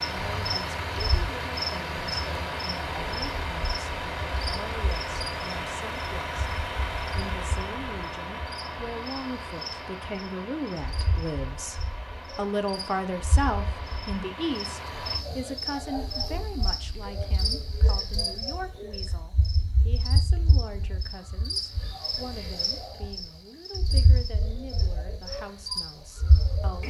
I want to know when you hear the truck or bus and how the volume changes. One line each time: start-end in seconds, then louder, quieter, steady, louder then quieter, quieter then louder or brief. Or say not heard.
0.0-15.2 quieter.